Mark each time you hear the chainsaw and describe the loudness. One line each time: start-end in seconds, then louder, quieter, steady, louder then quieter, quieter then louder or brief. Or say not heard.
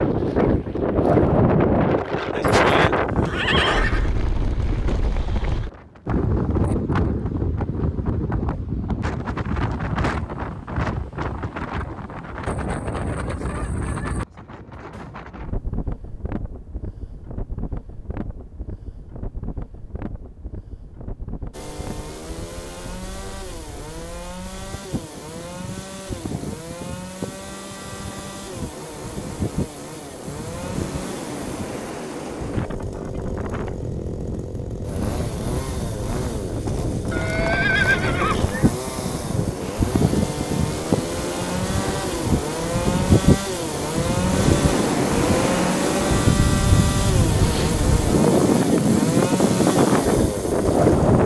21.5-51.2 louder.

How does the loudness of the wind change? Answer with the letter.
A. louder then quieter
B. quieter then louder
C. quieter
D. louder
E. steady
B.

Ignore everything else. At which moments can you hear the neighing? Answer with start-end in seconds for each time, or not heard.
2.5-4.1, 37.1-38.7.